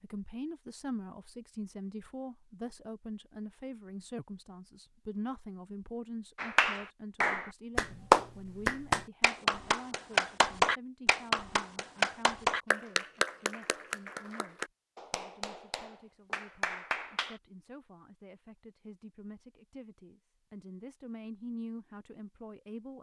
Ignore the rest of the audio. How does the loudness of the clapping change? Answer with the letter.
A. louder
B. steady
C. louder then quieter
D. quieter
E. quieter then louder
D.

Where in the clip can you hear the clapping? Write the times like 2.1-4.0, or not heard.
6.3-17.4.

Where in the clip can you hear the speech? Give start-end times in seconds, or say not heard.
0.0-22.9.